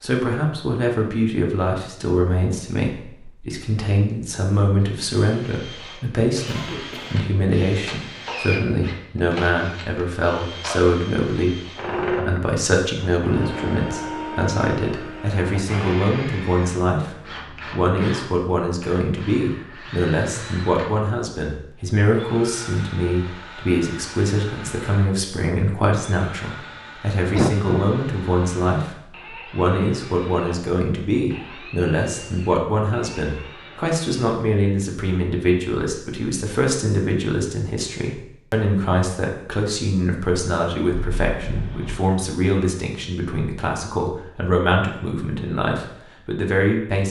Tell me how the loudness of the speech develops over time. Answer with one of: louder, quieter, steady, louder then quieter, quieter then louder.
steady.